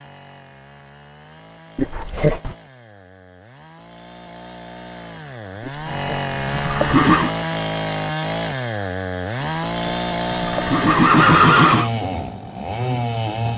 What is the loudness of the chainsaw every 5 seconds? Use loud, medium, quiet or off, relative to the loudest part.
quiet, loud, loud.